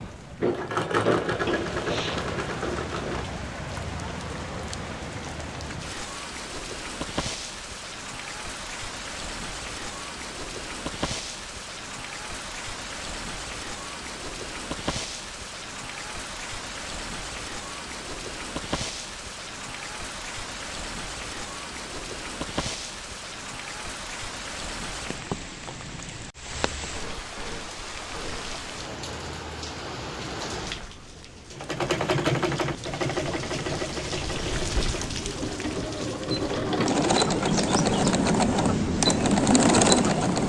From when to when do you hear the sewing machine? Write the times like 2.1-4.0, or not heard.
0.0-3.5, 31.5-40.4.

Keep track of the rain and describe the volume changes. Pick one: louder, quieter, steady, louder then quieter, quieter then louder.
steady.